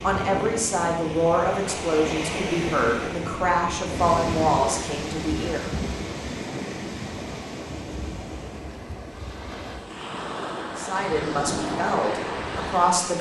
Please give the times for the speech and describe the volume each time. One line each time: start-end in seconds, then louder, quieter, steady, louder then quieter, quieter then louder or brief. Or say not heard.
0.0-5.7 steady
10.8-13.1 brief.